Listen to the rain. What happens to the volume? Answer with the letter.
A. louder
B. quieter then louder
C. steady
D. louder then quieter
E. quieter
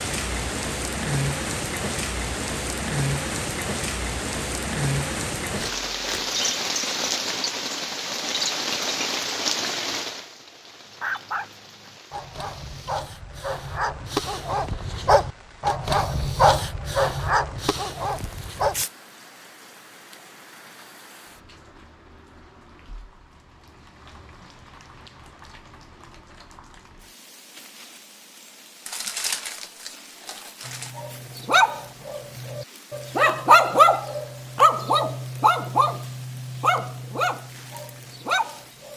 E.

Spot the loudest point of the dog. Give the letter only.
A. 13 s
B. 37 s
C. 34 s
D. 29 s
C.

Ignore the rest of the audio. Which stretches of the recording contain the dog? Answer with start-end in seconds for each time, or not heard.
11.0-18.9, 30.6-38.9.